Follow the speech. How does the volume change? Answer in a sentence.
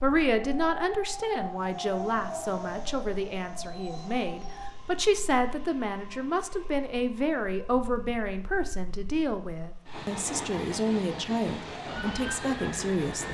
The loudness of the speech stays about the same.